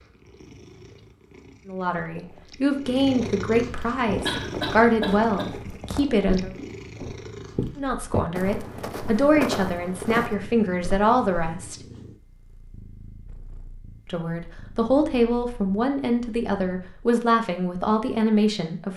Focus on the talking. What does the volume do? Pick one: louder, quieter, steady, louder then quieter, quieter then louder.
steady.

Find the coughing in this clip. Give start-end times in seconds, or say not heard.
4.2-5.5.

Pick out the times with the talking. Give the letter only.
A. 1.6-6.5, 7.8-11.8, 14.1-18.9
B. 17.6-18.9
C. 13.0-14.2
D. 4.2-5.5
A.